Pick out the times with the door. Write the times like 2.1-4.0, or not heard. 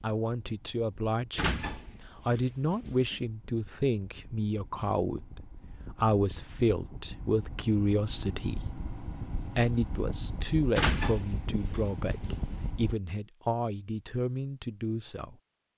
1.4-3.2, 10.8-12.6.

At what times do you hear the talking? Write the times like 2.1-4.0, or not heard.
0.0-15.3.